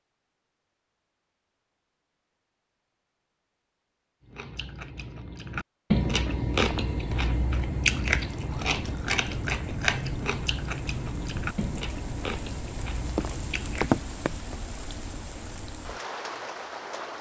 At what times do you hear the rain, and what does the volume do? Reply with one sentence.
The rain can be heard from 6.5 to 17.1 s, getting louder then quieter.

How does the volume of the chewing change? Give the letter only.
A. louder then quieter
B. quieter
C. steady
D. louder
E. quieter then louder
B.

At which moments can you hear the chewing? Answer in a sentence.
The chewing can be heard from 4.2 to 14.0 s.